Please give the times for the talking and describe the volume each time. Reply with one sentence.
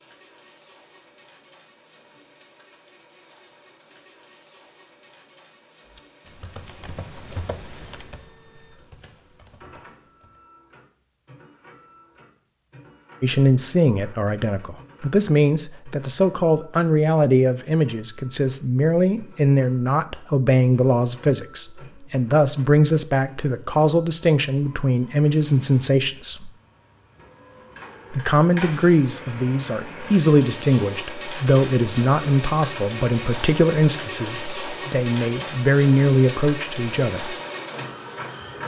The talking can be heard from 13.2 to 26.5 s, at a steady volume; and from 28.1 to 37.4 s, at a steady volume.